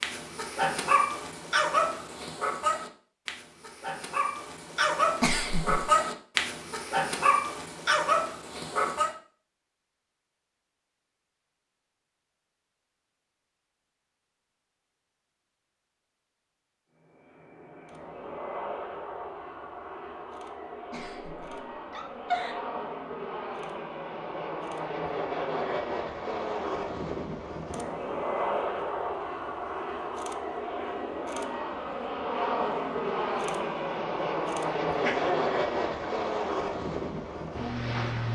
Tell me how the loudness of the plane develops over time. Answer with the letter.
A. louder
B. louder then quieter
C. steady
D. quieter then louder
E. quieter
A.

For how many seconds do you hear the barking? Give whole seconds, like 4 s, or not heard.
9 s.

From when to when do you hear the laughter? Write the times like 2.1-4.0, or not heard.
5.2-5.8, 20.9-22.6, 35.0-36.1.